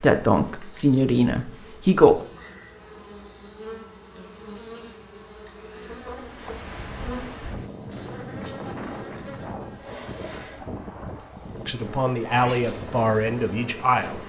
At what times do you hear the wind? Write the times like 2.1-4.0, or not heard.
6.2-14.2.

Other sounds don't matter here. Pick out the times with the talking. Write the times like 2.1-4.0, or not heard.
0.0-2.2, 11.7-14.2.